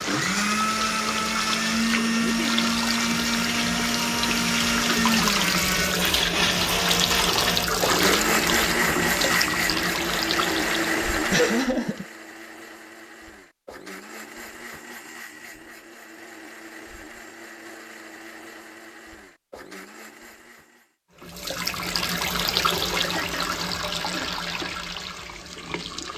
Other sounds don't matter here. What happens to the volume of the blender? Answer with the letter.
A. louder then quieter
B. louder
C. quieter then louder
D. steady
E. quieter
E.